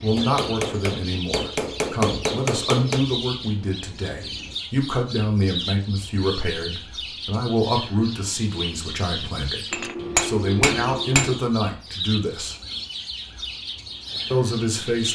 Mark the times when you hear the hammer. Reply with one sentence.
The hammer can be heard from 0.1 to 3.0 s and from 9.7 to 11.4 s.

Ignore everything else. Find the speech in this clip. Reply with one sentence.
The speech can be heard from 0.0 to 12.6 s and from 14.3 to 15.1 s.